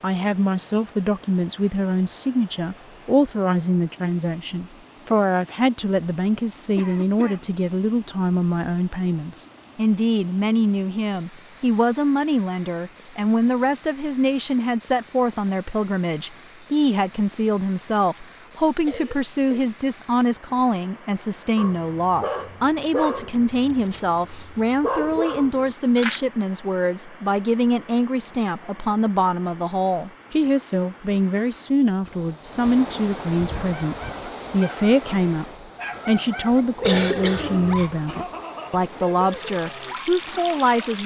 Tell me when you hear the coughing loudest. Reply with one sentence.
The loudest moment of the coughing is at 37 seconds.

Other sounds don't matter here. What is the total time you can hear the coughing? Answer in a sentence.
The coughing can be heard for 3 seconds in total.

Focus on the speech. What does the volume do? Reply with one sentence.
The volume of the speech stays about the same.